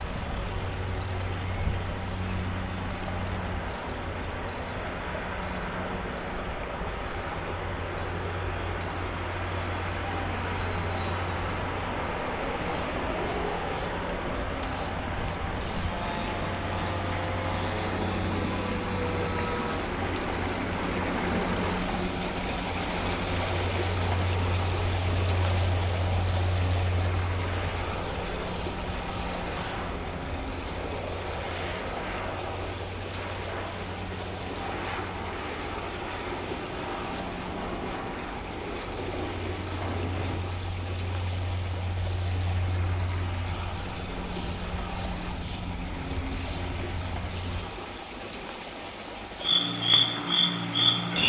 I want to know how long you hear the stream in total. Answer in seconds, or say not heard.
51 s.